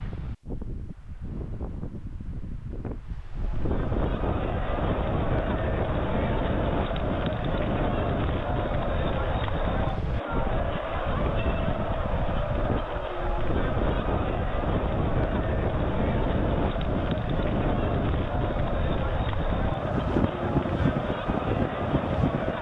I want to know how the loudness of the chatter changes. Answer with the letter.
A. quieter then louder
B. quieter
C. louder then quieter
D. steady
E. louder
D.